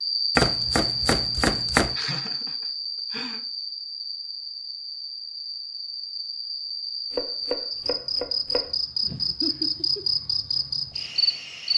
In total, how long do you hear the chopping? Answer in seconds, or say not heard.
3 s.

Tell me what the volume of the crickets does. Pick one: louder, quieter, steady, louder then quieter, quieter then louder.
quieter then louder.